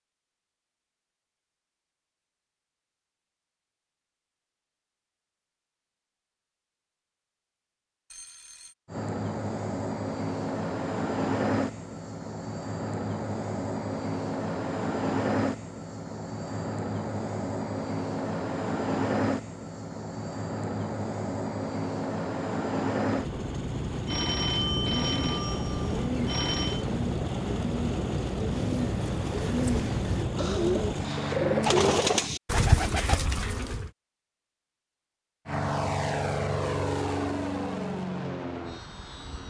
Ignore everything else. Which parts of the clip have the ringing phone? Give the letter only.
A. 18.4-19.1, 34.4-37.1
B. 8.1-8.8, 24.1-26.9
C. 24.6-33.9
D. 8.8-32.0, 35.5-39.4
B.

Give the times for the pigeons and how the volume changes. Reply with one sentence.
You can hear the pigeons from 24.6 to 33.9 s, getting louder.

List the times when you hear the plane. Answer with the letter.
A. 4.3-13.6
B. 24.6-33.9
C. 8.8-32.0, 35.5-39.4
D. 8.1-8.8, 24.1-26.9
C.